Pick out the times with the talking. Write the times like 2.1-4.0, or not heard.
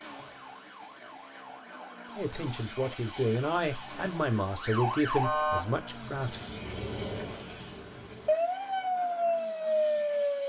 2.1-6.5.